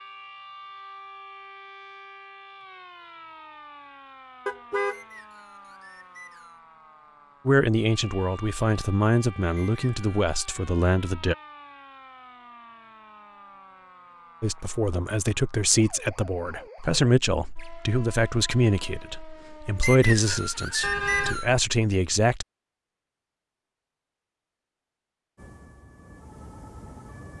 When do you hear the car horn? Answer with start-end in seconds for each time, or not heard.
4.5-5.0, 20.8-21.4.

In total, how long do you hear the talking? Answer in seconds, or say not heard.
12 s.